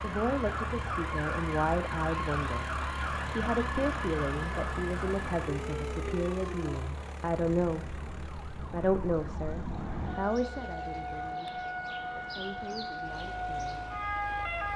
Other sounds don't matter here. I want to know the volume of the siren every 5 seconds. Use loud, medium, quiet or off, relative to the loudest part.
loud, medium, loud.